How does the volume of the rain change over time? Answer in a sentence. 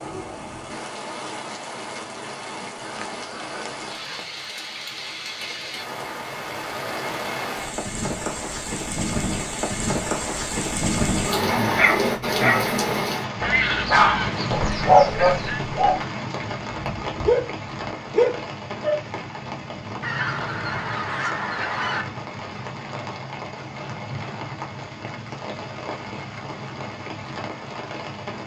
The loudness of the rain goes up, then down.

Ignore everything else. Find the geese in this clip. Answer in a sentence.
The geese can be heard from 2.8 to 4.2 s, from 13.4 to 15.6 s and from 20.0 to 22.1 s.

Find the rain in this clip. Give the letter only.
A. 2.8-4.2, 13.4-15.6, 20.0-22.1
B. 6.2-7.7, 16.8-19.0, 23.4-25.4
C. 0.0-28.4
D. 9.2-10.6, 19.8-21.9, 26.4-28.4
C.